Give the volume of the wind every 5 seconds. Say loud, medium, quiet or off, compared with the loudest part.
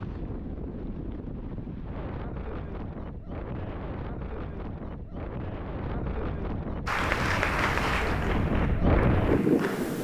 medium, loud.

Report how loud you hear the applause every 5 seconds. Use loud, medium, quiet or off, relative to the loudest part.
off, loud.